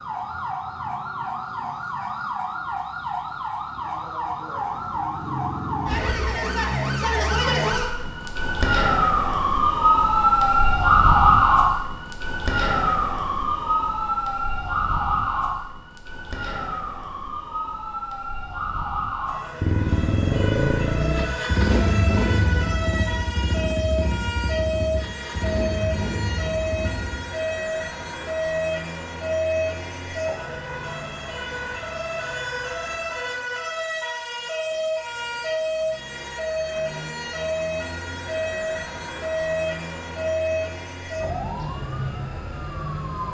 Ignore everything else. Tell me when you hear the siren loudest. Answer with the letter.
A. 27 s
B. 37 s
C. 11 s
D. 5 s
C.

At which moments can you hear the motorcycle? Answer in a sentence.
You can hear the motorcycle from 19.6 to 27.2 s.